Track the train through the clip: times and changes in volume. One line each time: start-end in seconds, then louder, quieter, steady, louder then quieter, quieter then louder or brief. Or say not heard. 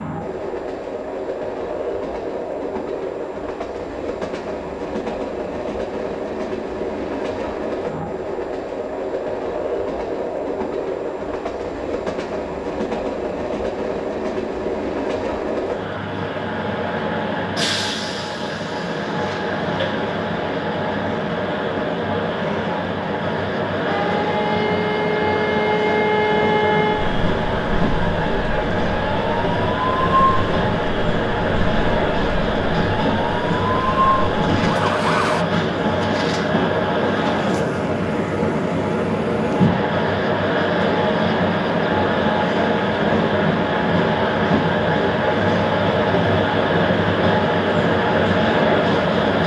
0.0-49.4 louder.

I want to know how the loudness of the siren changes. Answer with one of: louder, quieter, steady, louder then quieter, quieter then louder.
quieter then louder.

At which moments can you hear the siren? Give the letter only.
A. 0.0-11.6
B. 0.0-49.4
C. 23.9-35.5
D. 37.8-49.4
C.